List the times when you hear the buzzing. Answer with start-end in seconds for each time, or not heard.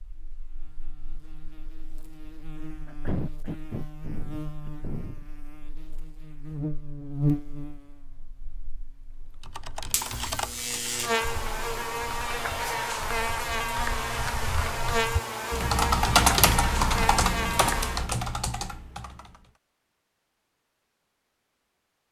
0.0-18.1.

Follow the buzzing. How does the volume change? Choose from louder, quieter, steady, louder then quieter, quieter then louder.
louder.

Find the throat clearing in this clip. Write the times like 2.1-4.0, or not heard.
2.9-5.2.